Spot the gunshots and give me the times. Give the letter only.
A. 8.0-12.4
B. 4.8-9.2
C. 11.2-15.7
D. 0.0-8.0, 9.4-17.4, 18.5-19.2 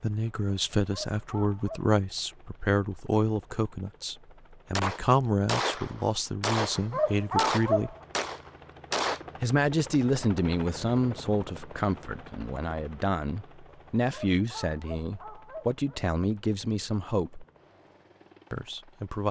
B.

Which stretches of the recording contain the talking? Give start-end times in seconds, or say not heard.
0.0-8.0, 9.4-17.4, 18.5-19.2.